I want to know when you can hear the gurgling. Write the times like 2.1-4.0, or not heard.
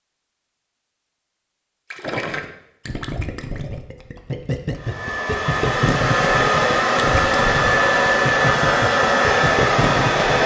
1.9-10.4.